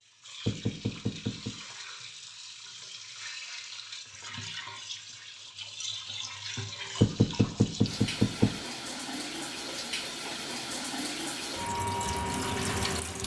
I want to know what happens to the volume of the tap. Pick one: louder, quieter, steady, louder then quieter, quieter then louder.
louder.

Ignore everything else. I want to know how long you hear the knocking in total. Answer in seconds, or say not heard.
3 s.